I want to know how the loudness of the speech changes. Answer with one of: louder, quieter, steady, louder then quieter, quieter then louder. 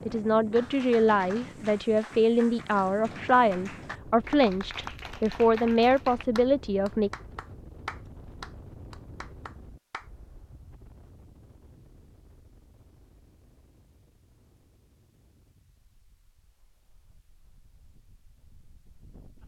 steady.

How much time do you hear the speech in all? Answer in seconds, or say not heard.
7 s.